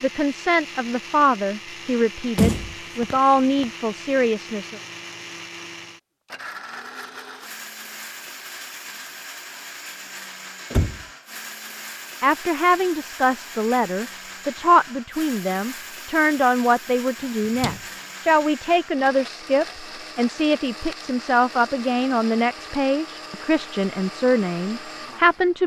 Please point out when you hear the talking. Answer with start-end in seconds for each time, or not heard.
0.0-4.8, 12.2-25.6.